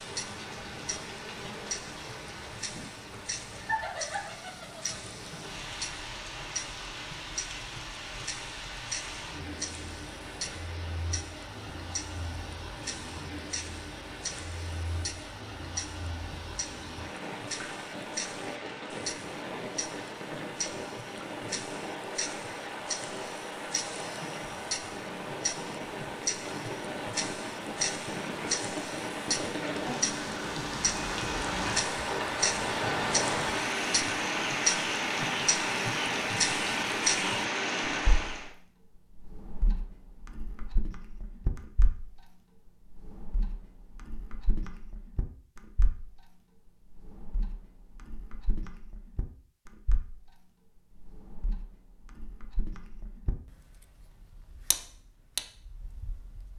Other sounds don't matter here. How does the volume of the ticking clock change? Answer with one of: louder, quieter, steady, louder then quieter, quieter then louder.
louder then quieter.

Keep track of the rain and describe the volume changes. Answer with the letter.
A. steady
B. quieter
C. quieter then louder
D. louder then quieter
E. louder
E.